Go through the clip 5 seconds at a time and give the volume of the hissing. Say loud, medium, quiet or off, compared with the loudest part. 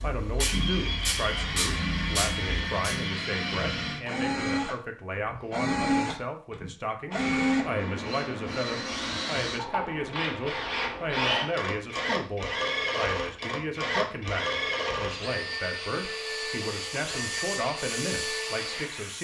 loud, off, off, medium.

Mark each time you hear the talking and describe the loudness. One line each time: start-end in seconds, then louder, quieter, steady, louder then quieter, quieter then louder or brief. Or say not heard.
0.0-19.1 steady.